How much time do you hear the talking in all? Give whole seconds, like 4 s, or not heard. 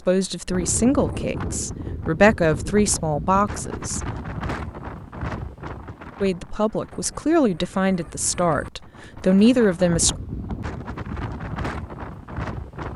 8 s.